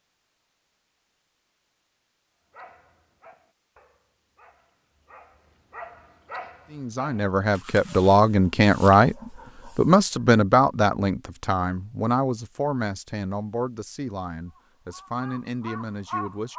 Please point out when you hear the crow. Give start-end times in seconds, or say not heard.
14.6-16.5.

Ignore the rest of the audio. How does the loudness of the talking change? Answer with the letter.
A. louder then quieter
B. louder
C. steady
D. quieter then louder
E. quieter
E.